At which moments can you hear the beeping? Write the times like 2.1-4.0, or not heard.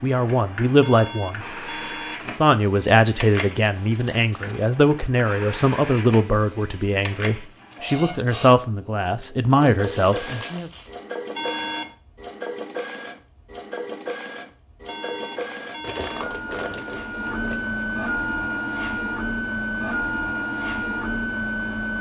0.8-2.2, 11.3-11.9, 14.8-16.4.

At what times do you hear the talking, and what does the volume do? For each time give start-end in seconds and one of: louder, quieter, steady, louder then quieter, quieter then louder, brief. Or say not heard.
0.0-1.6 brief
2.3-10.7 steady.